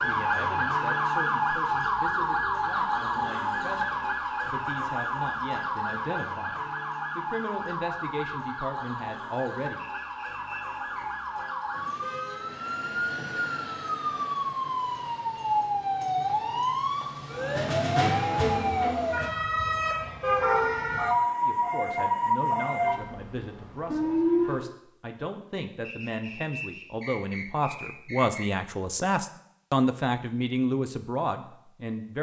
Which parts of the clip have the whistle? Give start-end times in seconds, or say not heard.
9.8-11.1, 25.8-28.5.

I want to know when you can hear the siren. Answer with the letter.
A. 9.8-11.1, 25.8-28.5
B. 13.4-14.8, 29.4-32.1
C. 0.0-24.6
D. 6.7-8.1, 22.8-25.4
C.